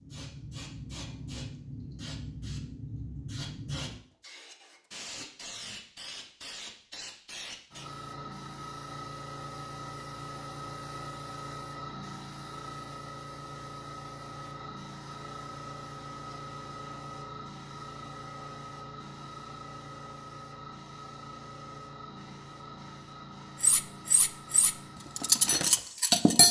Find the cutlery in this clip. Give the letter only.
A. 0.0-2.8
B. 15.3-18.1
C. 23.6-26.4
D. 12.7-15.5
C.